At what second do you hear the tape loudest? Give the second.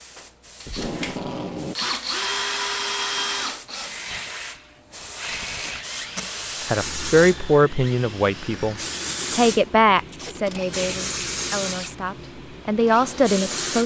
1 s.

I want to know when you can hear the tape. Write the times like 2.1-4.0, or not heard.
0.7-1.8, 5.5-6.2, 10.1-11.9.